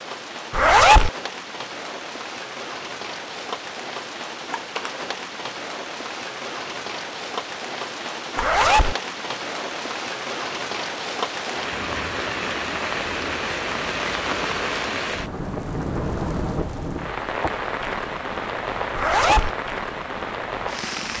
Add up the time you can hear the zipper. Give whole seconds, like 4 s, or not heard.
2 s.